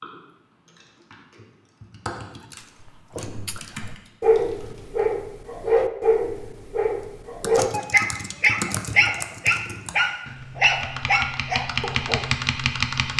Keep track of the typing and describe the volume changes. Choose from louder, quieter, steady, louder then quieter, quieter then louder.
louder.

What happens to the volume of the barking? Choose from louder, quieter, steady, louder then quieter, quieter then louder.
steady.